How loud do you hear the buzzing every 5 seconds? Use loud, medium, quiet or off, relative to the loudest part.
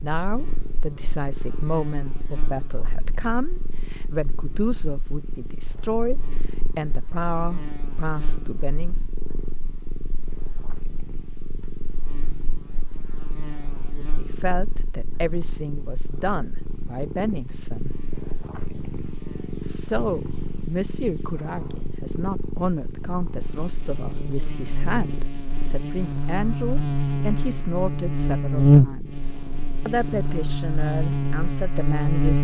quiet, quiet, quiet, quiet, quiet, loud, loud.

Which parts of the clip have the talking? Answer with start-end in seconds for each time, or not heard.
0.0-8.9, 13.9-17.9, 19.6-32.3.